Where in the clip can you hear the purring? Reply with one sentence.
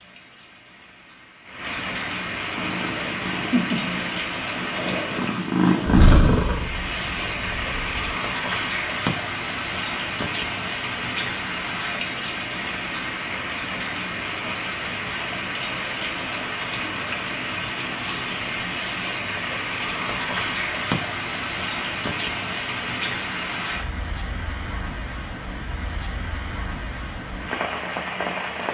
The purring can be heard from 2.5 to 8.0 s.